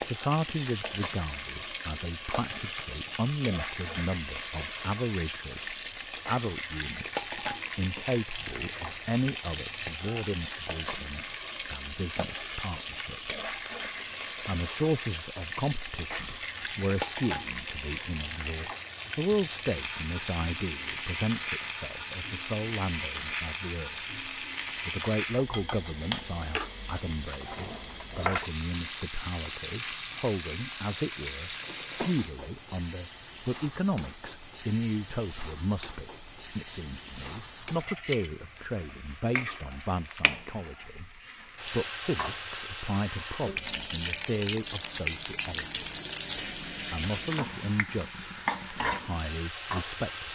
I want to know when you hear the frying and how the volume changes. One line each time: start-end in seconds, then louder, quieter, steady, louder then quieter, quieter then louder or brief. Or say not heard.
0.0-50.3 steady.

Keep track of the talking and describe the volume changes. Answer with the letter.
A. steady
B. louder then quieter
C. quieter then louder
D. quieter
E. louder
A.